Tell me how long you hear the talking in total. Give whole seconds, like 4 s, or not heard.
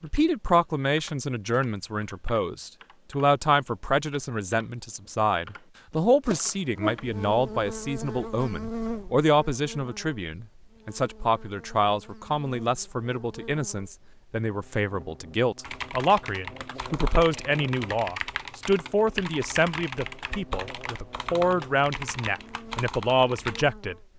24 s.